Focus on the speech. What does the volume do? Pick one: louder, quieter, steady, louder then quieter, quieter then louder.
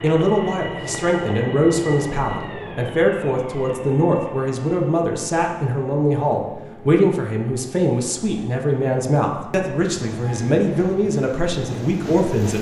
steady.